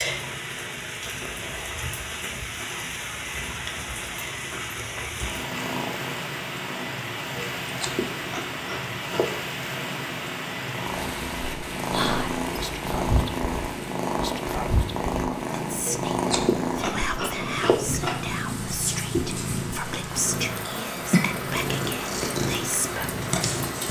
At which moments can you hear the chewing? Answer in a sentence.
You can hear the chewing from 7.3 to 9.4 s and from 15.8 to 18.3 s.